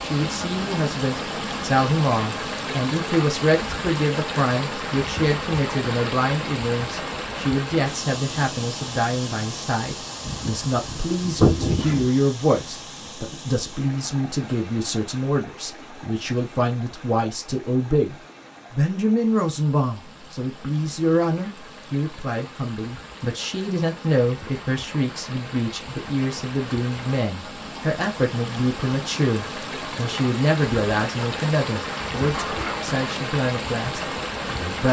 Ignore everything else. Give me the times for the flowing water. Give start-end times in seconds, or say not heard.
0.0-34.8.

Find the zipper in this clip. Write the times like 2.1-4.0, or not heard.
10.2-12.1, 32.3-32.9.